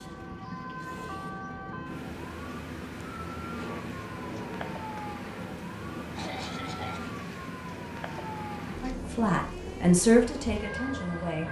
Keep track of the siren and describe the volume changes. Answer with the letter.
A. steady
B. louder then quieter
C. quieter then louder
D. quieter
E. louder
A.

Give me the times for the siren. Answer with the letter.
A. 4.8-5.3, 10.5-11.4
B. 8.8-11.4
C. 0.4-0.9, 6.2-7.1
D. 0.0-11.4
D.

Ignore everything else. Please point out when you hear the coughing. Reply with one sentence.
The coughing can be heard from 0.4 to 0.9 s and from 6.2 to 7.1 s.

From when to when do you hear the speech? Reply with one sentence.
You can hear the speech from 8.8 to 11.4 s.